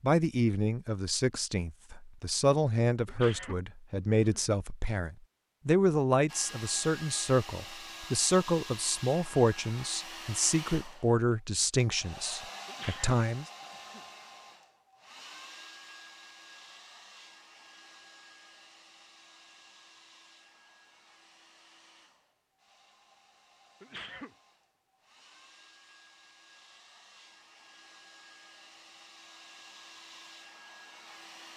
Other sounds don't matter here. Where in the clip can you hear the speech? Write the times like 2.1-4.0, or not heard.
0.0-13.4.